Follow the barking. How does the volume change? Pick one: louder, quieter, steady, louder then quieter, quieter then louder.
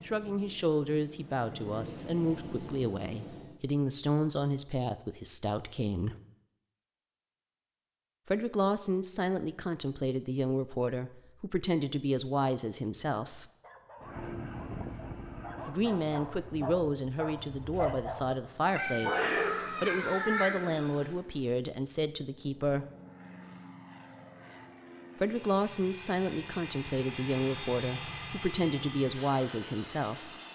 louder.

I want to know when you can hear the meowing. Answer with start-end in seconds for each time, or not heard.
18.8-21.1.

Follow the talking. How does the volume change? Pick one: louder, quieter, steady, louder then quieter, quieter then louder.
steady.